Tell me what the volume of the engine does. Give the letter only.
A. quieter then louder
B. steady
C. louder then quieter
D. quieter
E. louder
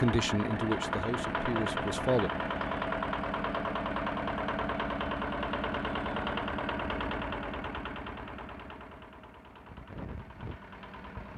D.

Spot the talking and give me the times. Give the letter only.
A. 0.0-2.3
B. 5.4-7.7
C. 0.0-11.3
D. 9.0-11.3
A.